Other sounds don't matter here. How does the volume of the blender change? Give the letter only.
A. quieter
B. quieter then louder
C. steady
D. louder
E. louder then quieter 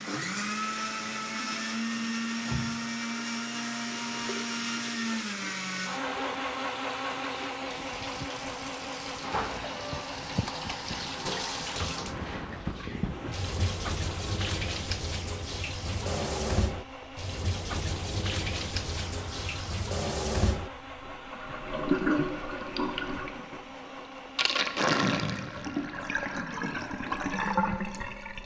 A.